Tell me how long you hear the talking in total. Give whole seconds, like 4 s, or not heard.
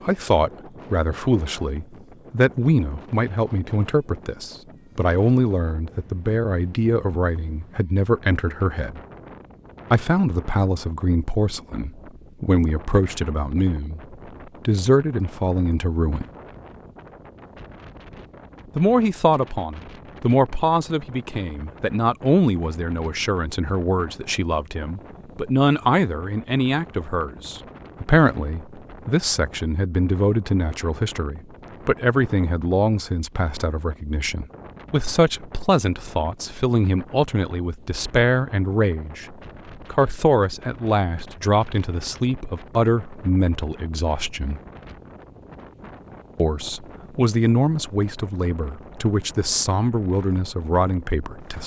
46 s.